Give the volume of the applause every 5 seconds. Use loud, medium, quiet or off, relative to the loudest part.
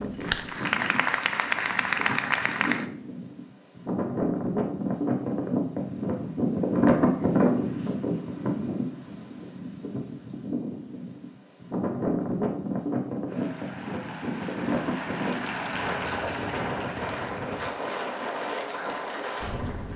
loud, off, quiet, medium.